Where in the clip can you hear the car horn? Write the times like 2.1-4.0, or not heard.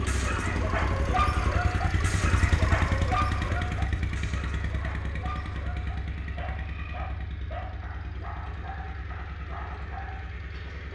not heard.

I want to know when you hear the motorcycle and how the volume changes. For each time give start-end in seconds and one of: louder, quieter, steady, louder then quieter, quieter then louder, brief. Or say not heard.
0.0-10.9 quieter.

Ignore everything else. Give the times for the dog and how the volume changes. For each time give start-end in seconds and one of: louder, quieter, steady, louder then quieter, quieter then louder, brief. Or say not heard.
0.0-10.8 quieter.